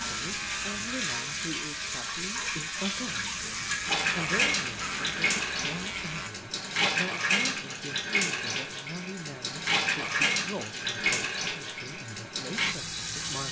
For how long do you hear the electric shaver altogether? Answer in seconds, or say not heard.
6 s.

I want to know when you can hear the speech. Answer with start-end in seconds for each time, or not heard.
0.0-3.4, 4.2-13.4.